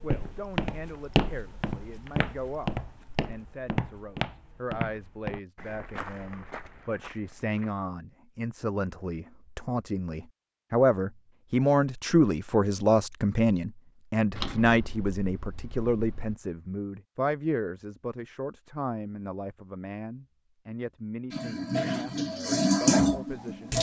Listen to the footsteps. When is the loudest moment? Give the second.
1 s.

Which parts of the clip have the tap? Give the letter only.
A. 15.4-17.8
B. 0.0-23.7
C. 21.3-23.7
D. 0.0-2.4
C.